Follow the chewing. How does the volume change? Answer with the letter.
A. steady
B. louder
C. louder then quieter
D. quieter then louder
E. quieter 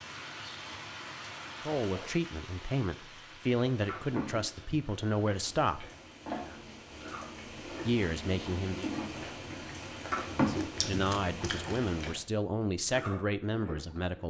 C.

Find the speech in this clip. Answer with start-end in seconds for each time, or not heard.
1.6-5.9, 7.8-8.9, 10.3-14.2.